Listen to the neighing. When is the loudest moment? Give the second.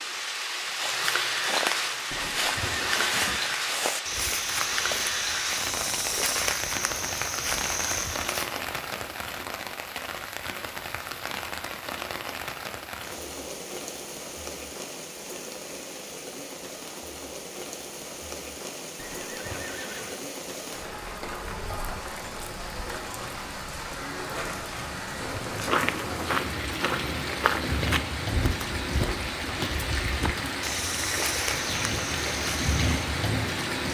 3 s.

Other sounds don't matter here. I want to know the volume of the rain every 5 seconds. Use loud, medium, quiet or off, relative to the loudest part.
loud, loud, medium, medium, medium, loud, loud.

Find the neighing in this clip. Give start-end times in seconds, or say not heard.
2.1-3.5, 18.9-20.2.